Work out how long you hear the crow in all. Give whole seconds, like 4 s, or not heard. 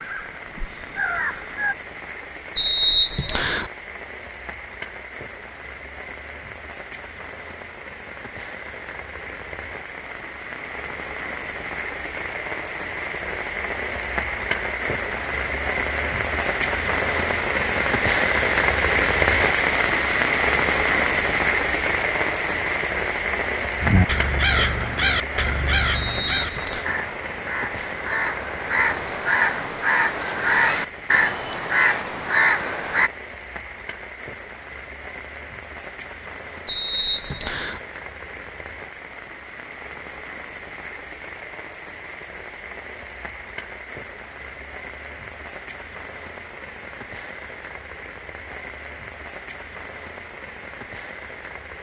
11 s.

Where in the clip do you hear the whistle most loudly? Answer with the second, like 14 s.
3 s.